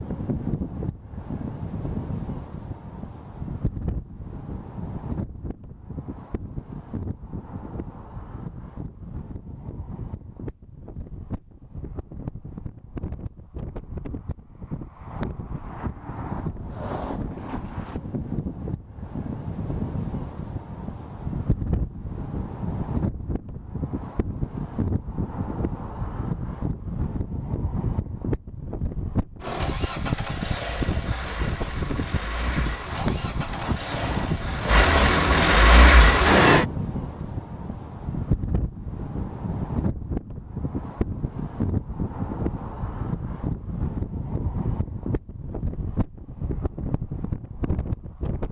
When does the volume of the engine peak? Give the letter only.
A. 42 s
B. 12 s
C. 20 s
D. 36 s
D.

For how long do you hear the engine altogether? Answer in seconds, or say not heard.
7 s.